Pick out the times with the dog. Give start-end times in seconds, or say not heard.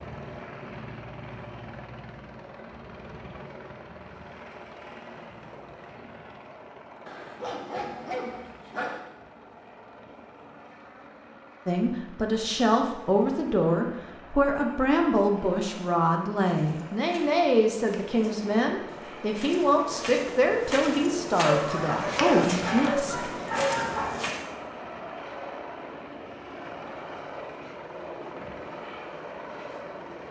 7.0-9.0, 21.4-24.1.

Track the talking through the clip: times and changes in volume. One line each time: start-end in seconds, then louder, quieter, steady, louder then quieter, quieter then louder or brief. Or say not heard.
11.7-23.3 steady.